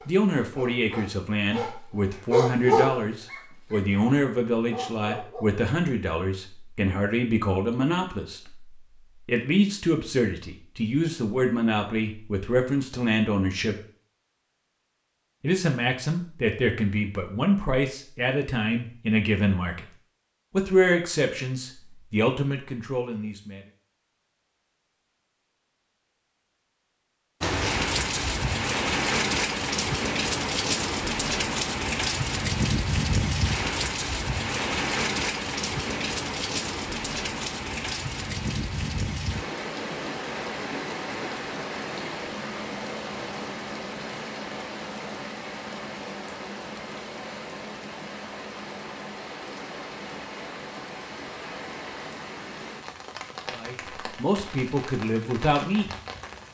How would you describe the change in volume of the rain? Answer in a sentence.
The loudness of the rain goes down.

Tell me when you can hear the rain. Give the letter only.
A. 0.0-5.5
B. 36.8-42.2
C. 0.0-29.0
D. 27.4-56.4
D.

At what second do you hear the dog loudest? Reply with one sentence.
The volume of the dog peaks at 3 seconds.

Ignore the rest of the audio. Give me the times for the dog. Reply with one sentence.
You can hear the dog from 0.0 to 5.5 s.